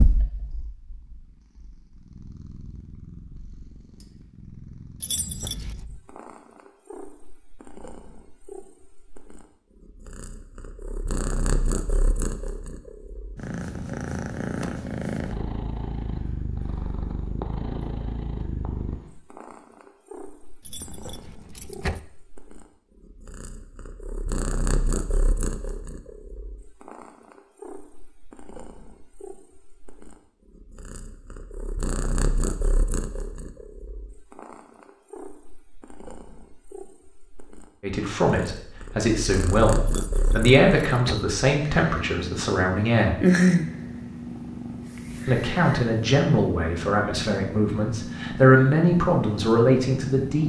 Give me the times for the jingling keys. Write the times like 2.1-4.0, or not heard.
5.0-5.7, 20.6-22.0, 39.9-41.2.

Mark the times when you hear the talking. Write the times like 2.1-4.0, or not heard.
37.8-43.1, 45.2-50.4.